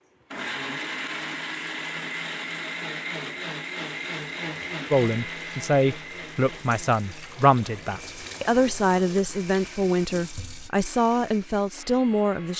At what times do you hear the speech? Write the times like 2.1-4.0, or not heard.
4.9-12.5.